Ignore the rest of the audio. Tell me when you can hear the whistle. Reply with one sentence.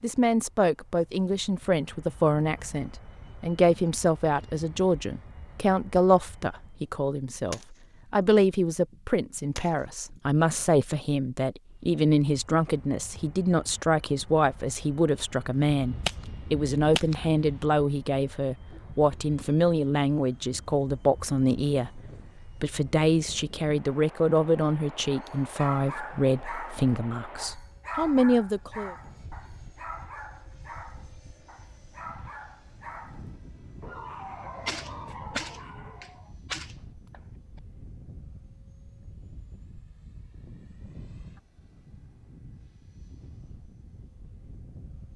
You can't hear the whistle here.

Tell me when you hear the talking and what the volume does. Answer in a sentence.
The talking can be heard from 0.0 to 28.9 s, at a steady volume.